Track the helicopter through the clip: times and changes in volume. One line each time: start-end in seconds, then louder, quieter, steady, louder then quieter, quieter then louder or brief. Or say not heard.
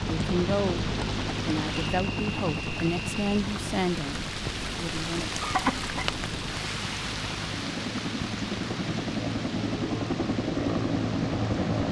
0.0-11.8 quieter then louder.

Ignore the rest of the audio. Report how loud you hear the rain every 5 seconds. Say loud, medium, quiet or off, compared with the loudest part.
loud, loud, medium.